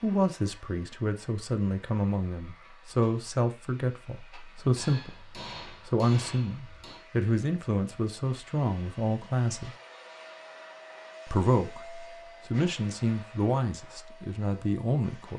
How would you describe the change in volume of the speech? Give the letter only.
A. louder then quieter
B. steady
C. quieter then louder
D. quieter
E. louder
B.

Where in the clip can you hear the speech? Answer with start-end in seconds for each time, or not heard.
0.0-9.7, 11.2-15.3.